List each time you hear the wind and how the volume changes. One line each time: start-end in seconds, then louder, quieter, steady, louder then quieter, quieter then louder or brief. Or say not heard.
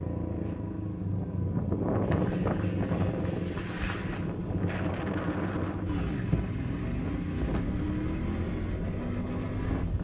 0.2-10.0 quieter.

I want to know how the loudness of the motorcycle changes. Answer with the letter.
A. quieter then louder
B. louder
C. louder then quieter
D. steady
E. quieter
D.